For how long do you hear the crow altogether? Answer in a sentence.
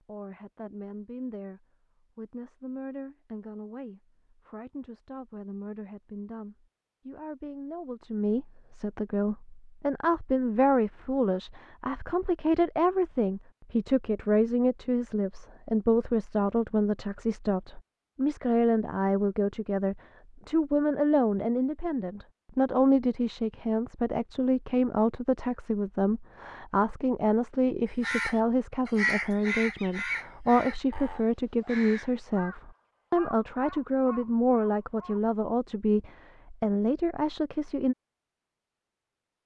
The crow can be heard for 7 seconds in total.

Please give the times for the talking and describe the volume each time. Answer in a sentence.
You can hear the talking from 0.1 to 38.0 s, getting louder.